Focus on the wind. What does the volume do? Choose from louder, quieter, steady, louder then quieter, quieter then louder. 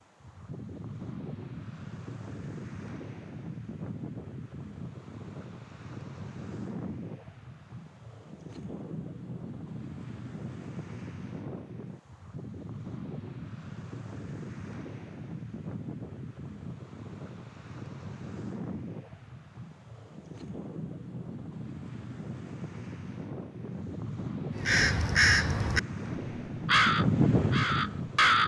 louder.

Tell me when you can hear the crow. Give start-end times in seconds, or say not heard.
24.6-28.4.